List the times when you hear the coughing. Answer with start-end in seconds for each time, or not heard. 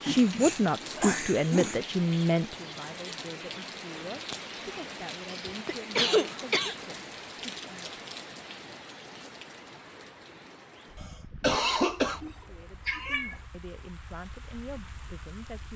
0.0-1.8, 5.3-6.8, 11.0-12.2.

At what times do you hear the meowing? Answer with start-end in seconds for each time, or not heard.
11.9-13.4.